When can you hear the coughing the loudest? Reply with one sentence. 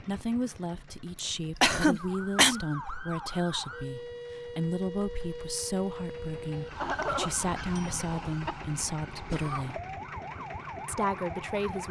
The volume of the coughing peaks at 2 seconds.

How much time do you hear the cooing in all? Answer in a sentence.
The cooing can't be heard in this clip.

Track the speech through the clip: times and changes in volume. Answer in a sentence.
You can hear the speech from 0.0 to 9.8 s, at a steady volume; and briefly from 10.8 to 11.8 s.